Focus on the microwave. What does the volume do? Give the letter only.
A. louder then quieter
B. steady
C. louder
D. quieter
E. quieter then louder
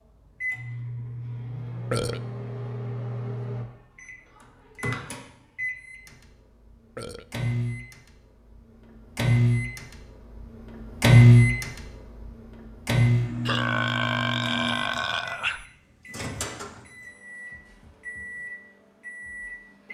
A.